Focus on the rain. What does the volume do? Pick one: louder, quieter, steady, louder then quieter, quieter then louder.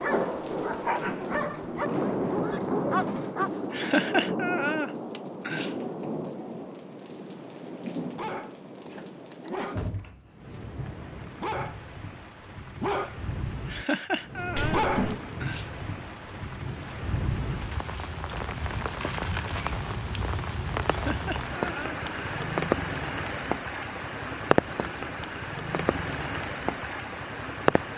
quieter then louder.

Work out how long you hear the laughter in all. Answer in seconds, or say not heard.
5 s.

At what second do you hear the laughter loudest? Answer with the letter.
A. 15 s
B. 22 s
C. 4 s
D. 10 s
C.